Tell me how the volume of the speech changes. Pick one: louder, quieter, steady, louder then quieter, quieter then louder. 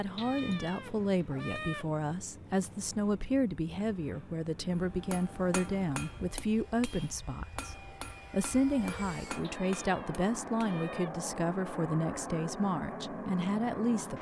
steady.